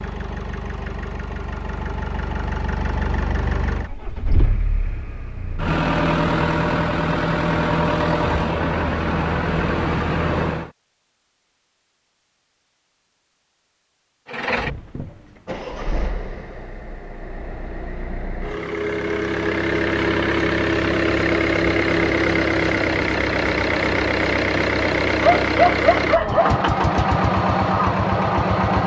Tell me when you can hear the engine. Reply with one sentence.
The engine can be heard from 0.0 to 10.7 s and from 14.2 to 28.8 s.